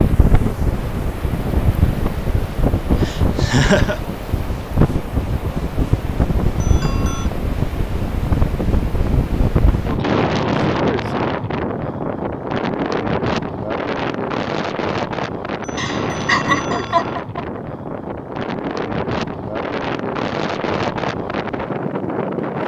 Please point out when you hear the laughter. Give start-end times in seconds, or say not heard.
2.9-4.0, 15.8-17.4.